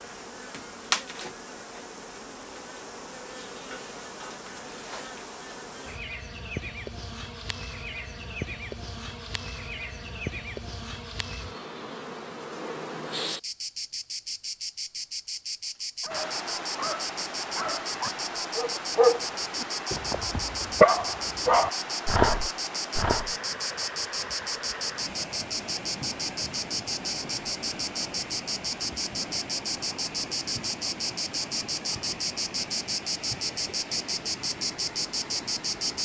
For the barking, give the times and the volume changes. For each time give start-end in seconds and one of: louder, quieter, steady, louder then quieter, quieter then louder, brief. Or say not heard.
16.0-23.3 louder.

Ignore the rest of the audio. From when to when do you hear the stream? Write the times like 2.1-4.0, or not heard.
16.1-35.9.